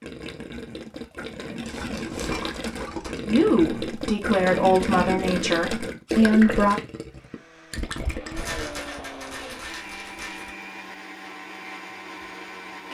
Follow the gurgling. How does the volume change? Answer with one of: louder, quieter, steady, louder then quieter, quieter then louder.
louder then quieter.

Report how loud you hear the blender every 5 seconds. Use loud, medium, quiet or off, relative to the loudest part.
off, loud, loud.